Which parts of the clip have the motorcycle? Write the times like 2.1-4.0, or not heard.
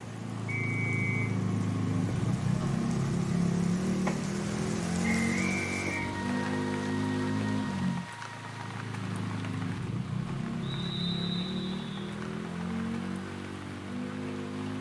0.0-14.7.